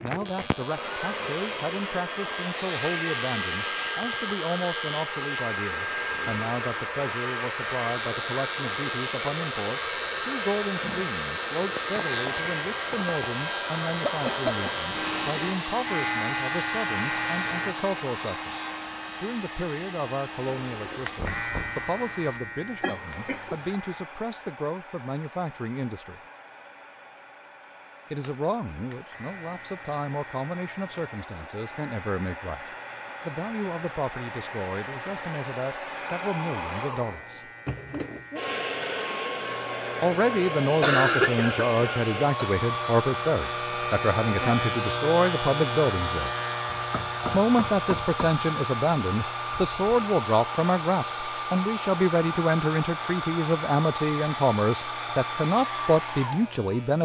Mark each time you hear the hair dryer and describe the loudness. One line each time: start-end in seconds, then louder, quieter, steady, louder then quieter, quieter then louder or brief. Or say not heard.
0.0-57.0 quieter then louder.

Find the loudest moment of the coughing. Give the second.
41 s.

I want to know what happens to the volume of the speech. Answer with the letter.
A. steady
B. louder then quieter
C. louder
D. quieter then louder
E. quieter
C.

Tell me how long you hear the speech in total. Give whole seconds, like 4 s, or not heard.
51 s.